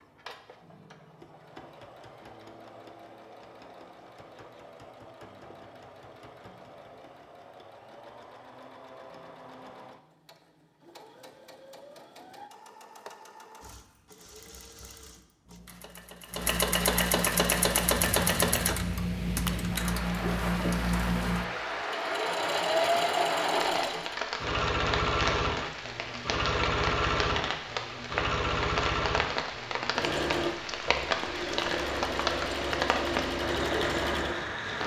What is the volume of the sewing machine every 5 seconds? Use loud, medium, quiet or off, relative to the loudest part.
quiet, quiet, quiet, loud, loud, loud, loud.